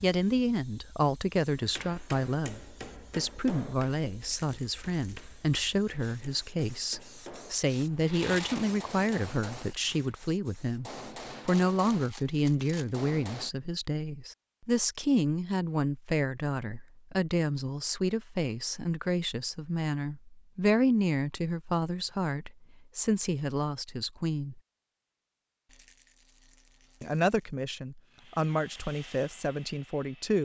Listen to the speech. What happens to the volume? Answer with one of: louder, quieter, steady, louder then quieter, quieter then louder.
steady.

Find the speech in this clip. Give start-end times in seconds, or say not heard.
0.0-24.6, 27.0-30.3.